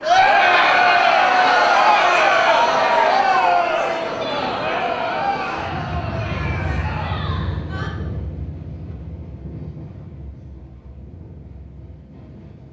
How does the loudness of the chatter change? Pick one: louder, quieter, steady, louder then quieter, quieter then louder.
quieter.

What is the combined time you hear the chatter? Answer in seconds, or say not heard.
8 s.